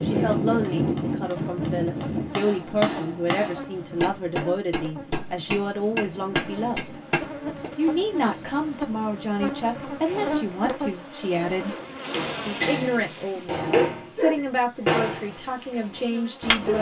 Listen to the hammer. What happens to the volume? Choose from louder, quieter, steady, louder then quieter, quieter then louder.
louder.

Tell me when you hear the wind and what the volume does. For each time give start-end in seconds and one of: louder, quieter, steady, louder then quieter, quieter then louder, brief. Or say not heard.
0.0-10.2 quieter.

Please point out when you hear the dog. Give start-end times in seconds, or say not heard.
not heard.